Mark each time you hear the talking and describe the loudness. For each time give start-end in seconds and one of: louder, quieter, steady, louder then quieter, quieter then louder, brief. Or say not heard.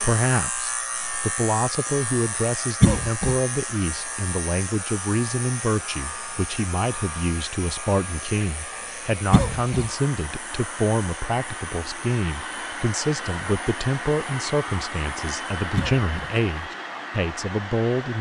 0.0-18.1 steady.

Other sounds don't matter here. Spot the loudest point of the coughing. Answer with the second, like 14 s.
3 s.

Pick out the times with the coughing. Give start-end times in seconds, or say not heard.
2.8-3.4, 9.3-9.8, 15.8-16.3.